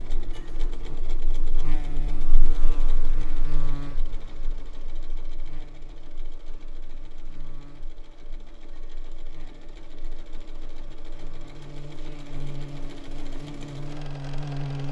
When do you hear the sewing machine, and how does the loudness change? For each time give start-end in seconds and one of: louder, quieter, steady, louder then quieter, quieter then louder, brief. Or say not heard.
0.0-14.8 quieter then louder.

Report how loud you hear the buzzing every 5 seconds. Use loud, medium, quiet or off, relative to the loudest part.
medium, quiet, loud.